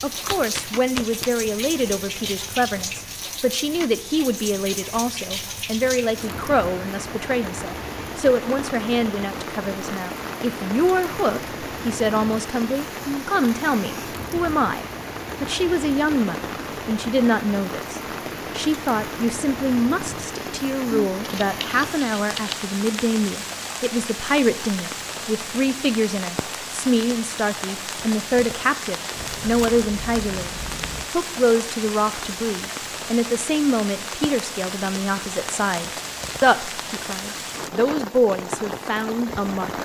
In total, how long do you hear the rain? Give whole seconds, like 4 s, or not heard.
40 s.